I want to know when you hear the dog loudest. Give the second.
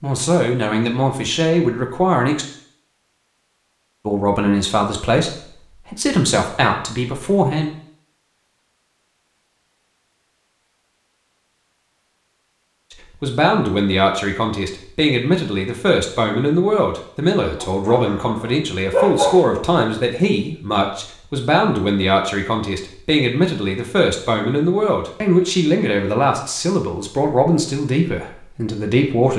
19 s.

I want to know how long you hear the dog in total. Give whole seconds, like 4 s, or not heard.
2 s.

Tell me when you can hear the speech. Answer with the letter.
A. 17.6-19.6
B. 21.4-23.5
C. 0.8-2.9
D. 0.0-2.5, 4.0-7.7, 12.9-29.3
D.